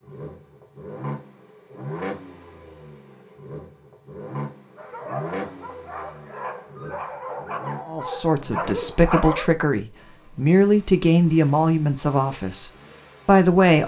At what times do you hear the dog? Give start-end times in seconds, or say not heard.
4.8-9.5.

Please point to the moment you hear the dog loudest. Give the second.
9 s.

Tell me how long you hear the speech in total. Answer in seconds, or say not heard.
6 s.